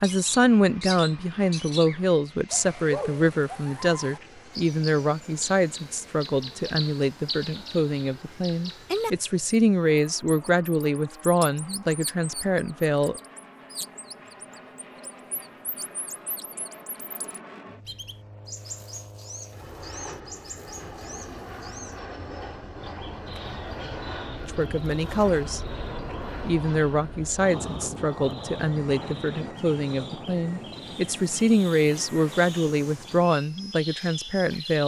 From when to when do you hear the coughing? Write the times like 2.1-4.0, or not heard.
not heard.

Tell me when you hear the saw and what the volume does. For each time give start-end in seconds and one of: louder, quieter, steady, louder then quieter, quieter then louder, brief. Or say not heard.
not heard.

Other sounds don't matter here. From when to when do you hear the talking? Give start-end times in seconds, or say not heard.
0.0-13.2, 24.4-25.6, 26.4-34.8.